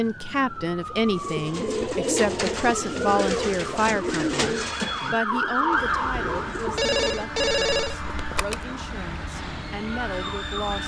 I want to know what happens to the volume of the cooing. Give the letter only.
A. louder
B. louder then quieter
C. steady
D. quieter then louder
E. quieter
E.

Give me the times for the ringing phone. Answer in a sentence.
You can hear the ringing phone from 6.8 to 8.7 s.